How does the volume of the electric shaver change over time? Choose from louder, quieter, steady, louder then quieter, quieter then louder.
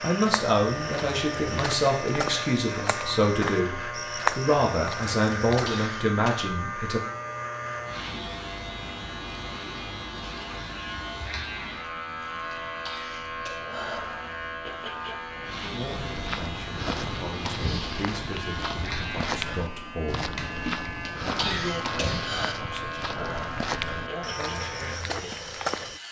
steady.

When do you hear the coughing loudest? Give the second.
22 s.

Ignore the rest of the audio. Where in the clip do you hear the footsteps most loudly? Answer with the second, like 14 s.
4 s.